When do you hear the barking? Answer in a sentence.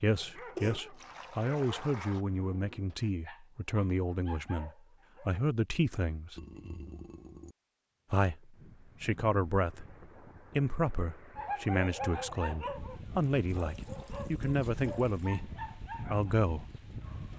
You can hear the barking from 0.0 to 5.3 s and from 11.3 to 17.3 s.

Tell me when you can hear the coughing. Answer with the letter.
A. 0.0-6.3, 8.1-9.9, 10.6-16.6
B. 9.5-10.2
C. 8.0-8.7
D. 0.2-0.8
D.